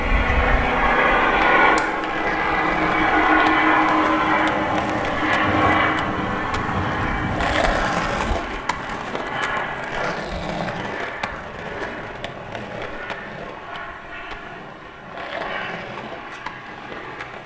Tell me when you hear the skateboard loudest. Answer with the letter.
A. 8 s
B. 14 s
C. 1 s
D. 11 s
A.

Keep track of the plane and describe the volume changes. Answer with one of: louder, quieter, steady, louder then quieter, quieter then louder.
quieter.